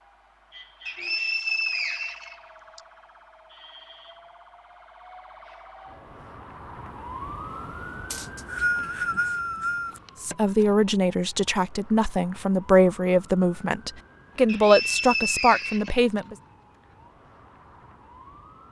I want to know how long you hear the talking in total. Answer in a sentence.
You can hear the talking for 6 seconds altogether.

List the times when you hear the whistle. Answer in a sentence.
You can hear the whistle from 0.8 to 2.8 s, from 8.1 to 10.0 s and from 14.4 to 16.0 s.